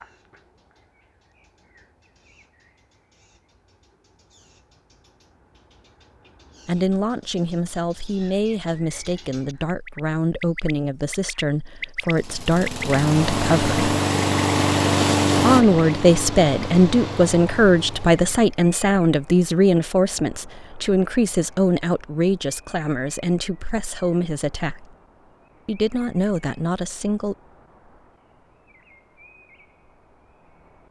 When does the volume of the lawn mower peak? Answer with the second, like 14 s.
15 s.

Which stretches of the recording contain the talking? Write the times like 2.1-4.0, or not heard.
6.7-13.8, 15.3-24.9, 25.6-27.4.